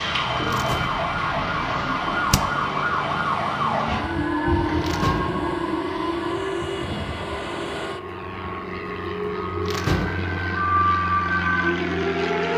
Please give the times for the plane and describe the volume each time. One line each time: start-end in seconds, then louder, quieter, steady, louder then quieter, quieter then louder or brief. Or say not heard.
0.0-12.5 louder.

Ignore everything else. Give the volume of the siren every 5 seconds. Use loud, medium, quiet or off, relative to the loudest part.
loud, medium, loud.